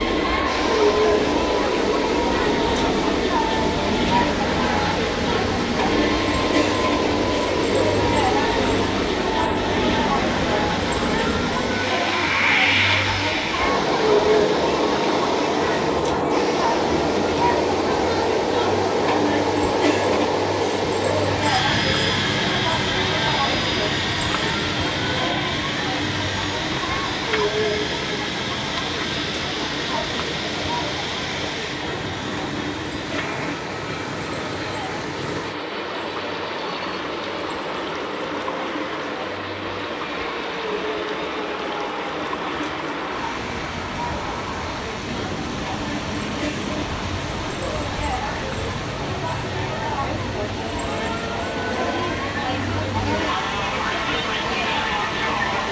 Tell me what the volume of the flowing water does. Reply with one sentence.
The volume of the flowing water stays about the same.